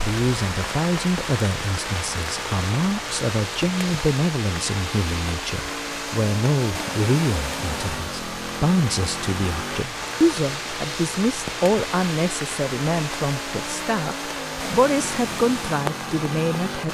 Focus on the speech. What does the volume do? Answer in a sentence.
The loudness of the speech stays about the same.